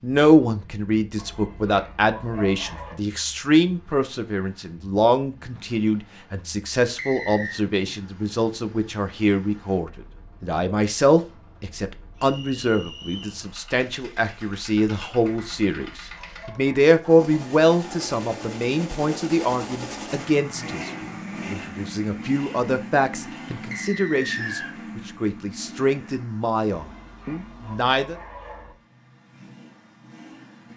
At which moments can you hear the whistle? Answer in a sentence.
The whistle can be heard from 7.0 to 7.6 s, from 12.2 to 13.4 s and from 23.7 to 24.8 s.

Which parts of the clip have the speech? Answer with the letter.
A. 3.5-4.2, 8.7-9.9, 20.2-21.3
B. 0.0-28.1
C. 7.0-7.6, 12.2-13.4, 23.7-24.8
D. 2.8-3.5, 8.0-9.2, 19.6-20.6
B.